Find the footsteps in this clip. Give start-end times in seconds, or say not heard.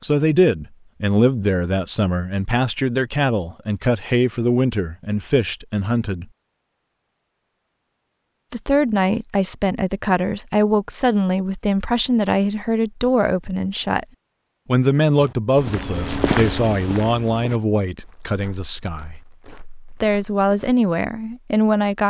15.2-20.8.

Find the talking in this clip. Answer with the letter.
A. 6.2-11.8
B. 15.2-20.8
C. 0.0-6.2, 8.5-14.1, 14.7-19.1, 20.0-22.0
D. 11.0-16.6
C.